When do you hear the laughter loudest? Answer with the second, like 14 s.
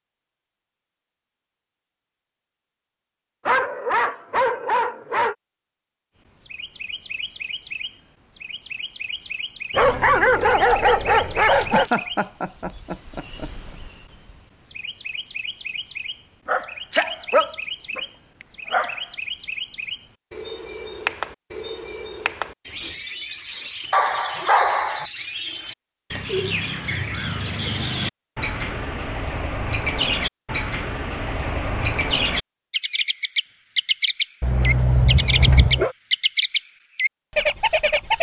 12 s.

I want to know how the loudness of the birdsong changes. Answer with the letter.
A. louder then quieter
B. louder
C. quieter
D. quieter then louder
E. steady
B.